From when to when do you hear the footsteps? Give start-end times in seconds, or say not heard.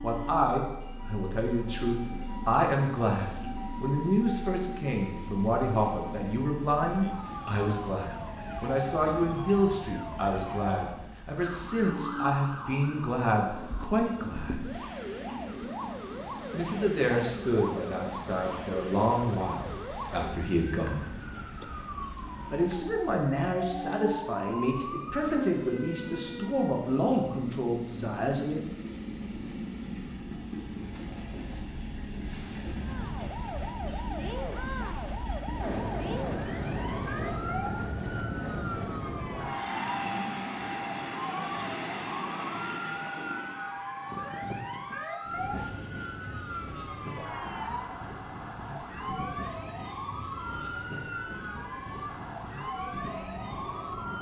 not heard.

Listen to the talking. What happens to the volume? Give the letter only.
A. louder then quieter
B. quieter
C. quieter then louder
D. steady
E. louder
D.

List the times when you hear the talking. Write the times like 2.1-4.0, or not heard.
0.0-14.6, 16.5-21.1, 22.5-28.6.